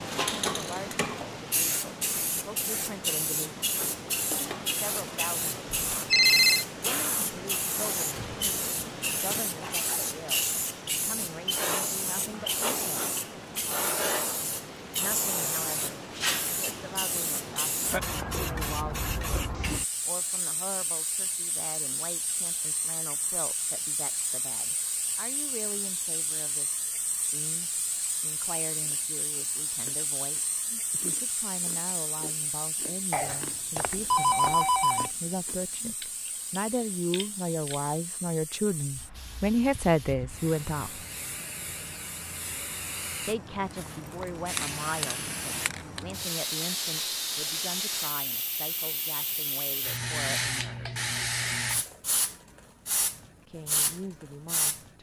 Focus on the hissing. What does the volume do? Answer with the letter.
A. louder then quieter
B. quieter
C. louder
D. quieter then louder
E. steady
D.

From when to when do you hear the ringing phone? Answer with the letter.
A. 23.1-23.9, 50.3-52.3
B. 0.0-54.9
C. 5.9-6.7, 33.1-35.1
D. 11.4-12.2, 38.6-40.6
C.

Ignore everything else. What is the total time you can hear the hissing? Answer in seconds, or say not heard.
55 s.